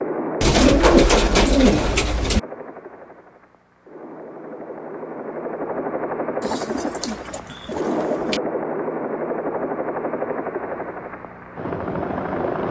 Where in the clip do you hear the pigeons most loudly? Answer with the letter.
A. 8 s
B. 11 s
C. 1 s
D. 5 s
C.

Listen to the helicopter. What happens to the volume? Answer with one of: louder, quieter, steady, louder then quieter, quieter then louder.
quieter then louder.